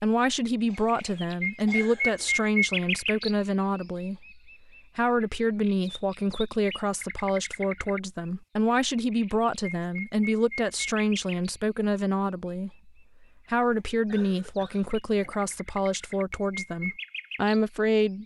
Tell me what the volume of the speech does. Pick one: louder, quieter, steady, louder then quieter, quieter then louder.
steady.